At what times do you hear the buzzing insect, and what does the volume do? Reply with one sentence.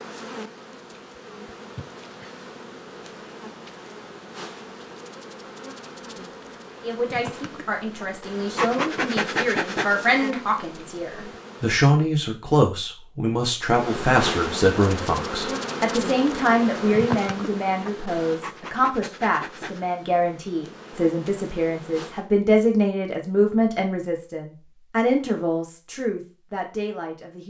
The buzzing insect can be heard from 0.0 to 11.8 s, getting louder; and from 13.7 to 22.3 s, getting quieter.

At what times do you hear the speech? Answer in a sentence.
The speech can be heard from 6.8 to 27.4 s.